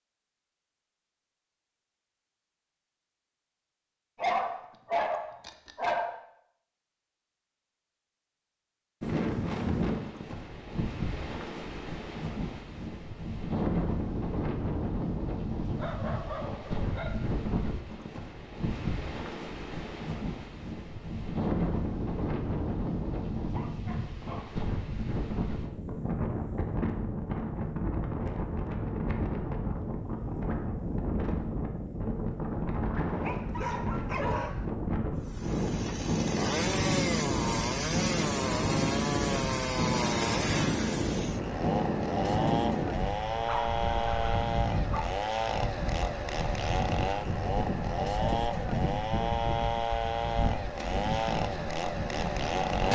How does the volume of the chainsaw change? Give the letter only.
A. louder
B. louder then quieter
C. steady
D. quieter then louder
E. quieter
C.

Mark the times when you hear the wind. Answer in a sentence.
The wind can be heard from 9.0 to 52.8 s.